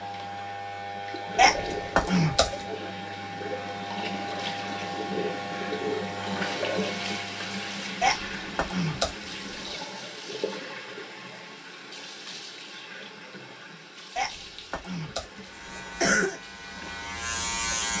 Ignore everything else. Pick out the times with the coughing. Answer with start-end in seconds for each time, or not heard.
1.4-2.5, 8.0-9.8, 14.2-16.4.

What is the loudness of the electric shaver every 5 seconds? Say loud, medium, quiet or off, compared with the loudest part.
loud, loud, off, loud.